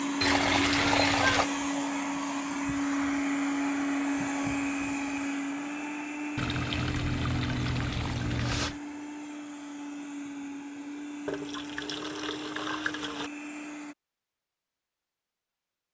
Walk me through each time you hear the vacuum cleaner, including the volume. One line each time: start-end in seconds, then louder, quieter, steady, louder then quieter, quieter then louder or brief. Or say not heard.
0.0-13.9 quieter.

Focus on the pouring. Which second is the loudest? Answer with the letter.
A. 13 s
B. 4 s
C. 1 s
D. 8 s
C.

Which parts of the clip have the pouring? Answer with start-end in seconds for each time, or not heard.
0.2-1.5, 6.3-8.8, 11.2-13.3.